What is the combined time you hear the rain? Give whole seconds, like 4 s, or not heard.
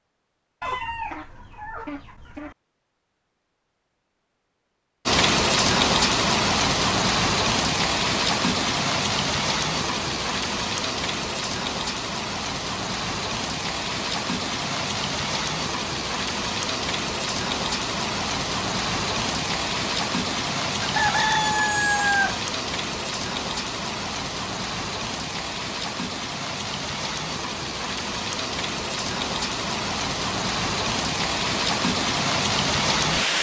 28 s.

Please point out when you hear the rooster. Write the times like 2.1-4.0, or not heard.
0.6-2.5, 20.8-22.4.